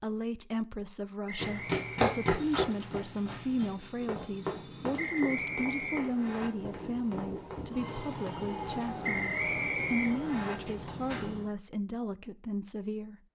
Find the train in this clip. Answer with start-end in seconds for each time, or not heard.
3.2-11.5.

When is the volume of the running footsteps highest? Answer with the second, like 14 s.
2 s.